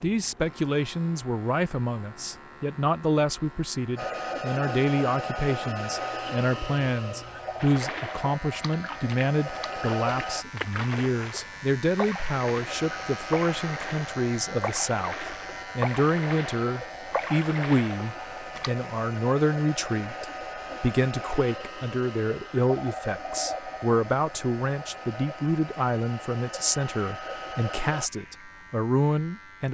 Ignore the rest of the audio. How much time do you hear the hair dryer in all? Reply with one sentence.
You can hear the hair dryer for 22 seconds altogether.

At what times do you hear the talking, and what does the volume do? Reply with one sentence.
The talking can be heard from 0.0 to 29.6 s, at a steady volume.